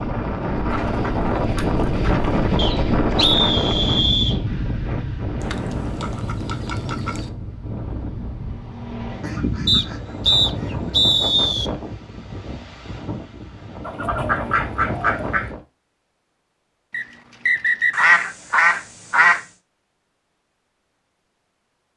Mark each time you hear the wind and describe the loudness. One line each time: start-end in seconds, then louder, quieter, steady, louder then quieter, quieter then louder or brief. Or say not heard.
0.0-15.7 quieter.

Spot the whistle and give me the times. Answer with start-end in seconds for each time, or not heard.
2.5-4.4, 9.7-11.7, 16.9-18.1.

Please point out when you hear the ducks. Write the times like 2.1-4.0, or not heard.
0.7-2.5, 5.4-7.3, 9.2-10.9, 13.8-15.5, 17.9-19.4.